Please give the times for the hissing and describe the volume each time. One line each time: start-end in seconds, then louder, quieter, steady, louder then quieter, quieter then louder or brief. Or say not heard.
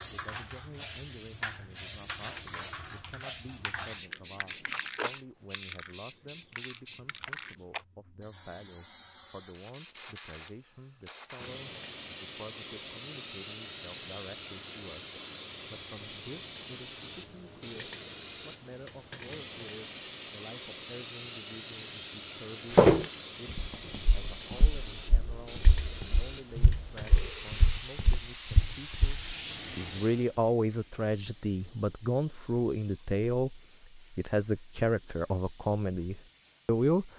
0.0-37.1 quieter.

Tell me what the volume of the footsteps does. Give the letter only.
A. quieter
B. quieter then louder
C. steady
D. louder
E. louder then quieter
D.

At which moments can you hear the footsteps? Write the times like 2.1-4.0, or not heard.
22.7-29.4.